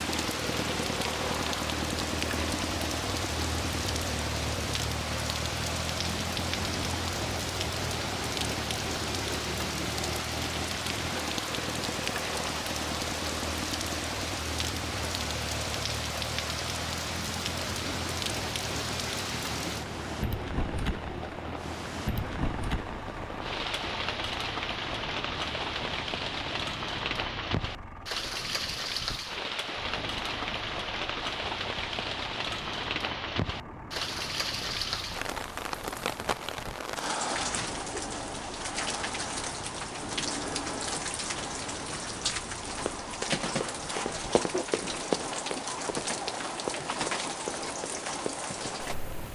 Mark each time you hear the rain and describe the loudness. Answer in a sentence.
The rain can be heard from 0.0 to 49.3 s, at a steady volume.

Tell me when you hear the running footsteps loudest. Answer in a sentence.
The loudest moment of the running footsteps is at 45 seconds.